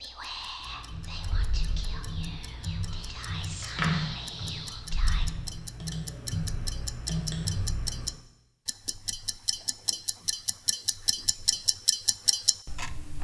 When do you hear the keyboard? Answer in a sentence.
You can hear the keyboard from 0.6 to 8.1 s.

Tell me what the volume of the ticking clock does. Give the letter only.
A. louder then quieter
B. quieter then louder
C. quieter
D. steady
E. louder
E.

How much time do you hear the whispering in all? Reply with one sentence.
The whispering can be heard for 5 seconds in total.